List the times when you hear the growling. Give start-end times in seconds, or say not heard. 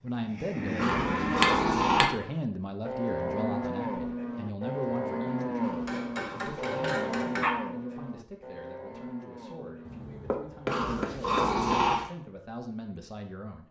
0.8-2.1, 5.6-7.5, 10.7-12.1.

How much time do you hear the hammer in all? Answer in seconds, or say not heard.
5 s.